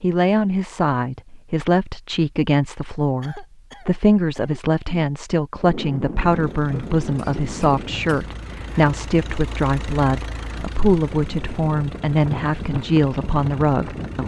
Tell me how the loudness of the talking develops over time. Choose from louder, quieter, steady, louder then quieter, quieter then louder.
steady.